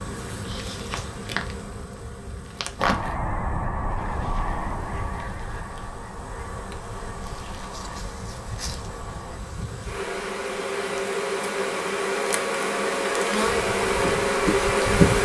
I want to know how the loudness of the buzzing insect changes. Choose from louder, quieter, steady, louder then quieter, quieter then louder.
quieter then louder.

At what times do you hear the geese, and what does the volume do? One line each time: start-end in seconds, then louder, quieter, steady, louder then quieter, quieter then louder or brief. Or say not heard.
2.8-9.4 quieter.